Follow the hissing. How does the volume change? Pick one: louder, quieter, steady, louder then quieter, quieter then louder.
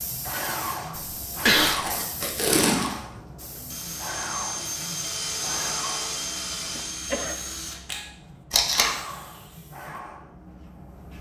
quieter then louder.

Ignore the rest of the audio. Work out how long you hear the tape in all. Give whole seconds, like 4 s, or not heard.
2 s.